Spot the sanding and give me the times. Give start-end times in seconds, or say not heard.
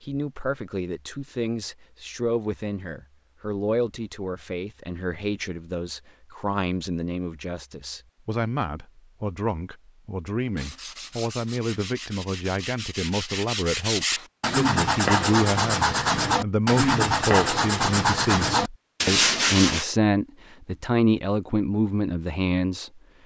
10.6-19.9.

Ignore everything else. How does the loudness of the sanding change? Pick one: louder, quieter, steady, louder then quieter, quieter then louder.
louder.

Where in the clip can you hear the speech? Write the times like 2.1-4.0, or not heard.
0.0-23.0.